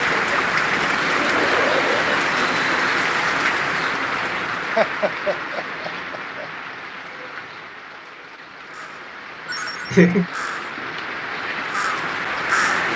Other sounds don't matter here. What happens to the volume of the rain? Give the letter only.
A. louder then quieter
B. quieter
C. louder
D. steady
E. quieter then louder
E.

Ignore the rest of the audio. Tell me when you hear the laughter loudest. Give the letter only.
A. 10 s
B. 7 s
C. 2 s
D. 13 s
A.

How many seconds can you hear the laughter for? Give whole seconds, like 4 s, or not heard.
4 s.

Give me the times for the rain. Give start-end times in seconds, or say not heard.
0.0-12.9.